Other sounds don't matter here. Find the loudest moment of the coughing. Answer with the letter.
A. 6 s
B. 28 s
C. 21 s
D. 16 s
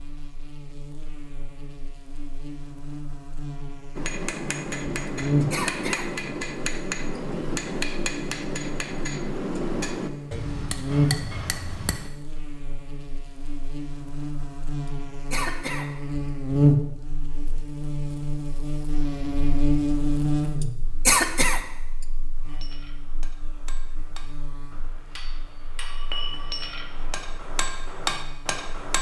C.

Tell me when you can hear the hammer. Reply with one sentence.
You can hear the hammer from 4.0 to 12.1 s and from 22.4 to 28.9 s.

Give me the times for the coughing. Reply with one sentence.
The coughing can be heard from 5.0 to 6.0 s, from 14.8 to 15.8 s and from 20.6 to 21.6 s.